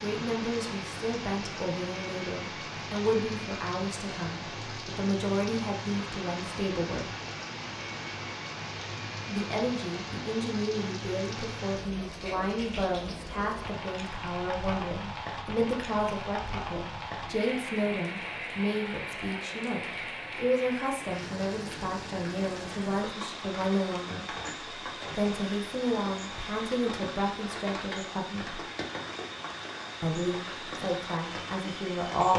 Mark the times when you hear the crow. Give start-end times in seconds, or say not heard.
not heard.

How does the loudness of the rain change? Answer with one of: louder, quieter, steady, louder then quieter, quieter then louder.
steady.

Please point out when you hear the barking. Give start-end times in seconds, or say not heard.
not heard.